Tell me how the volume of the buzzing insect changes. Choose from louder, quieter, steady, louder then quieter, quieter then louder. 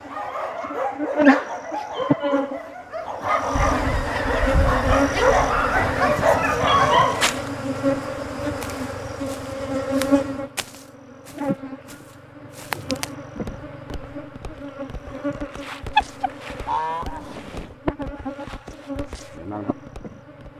quieter.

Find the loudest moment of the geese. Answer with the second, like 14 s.
16 s.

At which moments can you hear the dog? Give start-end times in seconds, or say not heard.
0.0-7.4.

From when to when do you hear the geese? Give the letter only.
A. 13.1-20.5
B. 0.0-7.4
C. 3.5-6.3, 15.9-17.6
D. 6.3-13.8
C.